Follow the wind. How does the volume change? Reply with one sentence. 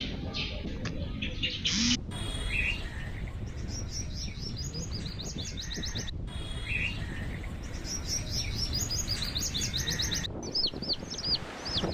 The loudness of the wind stays about the same.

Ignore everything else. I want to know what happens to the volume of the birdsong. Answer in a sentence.
The volume of the birdsong goes down, then up.